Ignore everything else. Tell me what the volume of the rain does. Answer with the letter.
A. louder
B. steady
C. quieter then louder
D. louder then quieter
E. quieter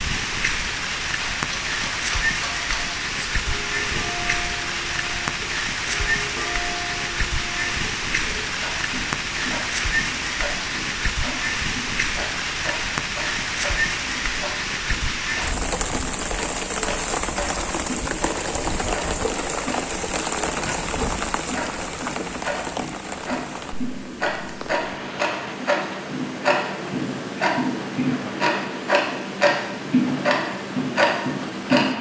E.